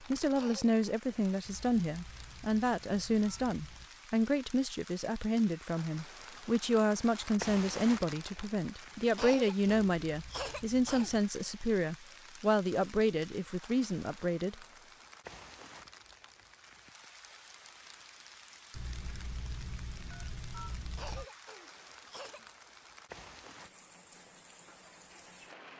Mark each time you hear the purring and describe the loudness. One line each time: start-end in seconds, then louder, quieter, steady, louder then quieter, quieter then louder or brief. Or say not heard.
not heard.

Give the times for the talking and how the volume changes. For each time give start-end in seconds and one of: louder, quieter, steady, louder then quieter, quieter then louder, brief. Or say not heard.
0.0-14.7 steady.